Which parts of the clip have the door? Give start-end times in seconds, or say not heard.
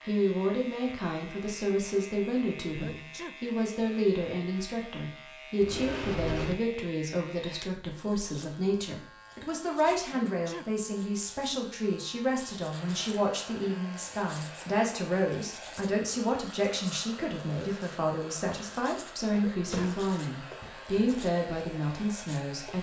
5.6-6.6, 19.7-21.1.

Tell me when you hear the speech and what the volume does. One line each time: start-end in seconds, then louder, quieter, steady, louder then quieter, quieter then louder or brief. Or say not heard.
0.1-22.7 steady.